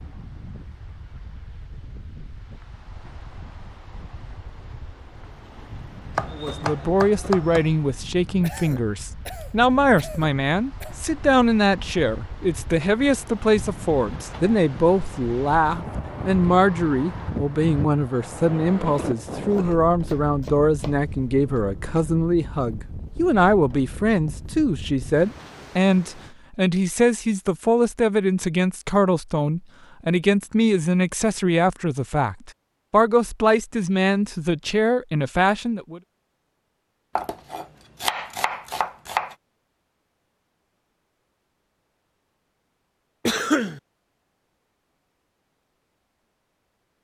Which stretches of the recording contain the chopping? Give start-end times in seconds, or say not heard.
6.2-7.8, 19.5-21.1, 37.1-39.4.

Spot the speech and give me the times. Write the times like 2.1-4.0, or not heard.
6.3-36.0.